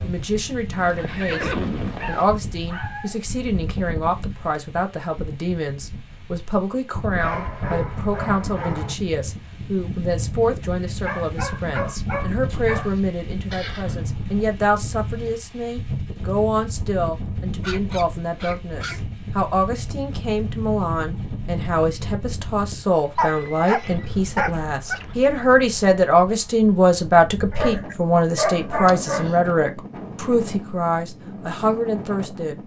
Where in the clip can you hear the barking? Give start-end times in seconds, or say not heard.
1.8-3.2, 7.2-8.9, 11.1-13.0, 17.6-19.0, 22.9-25.1, 27.5-29.4.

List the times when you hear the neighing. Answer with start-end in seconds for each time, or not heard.
0.8-2.2, 13.5-14.4, 23.2-24.2.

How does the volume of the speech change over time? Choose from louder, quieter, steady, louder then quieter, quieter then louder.
louder.